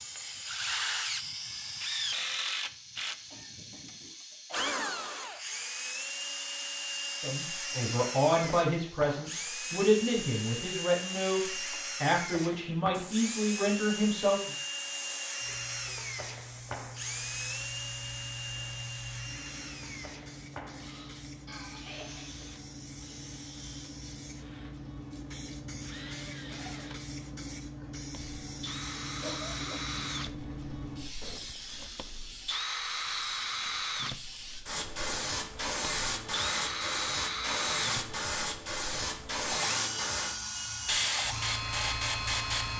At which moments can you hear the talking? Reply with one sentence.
The talking can be heard from 7.2 to 14.5 s.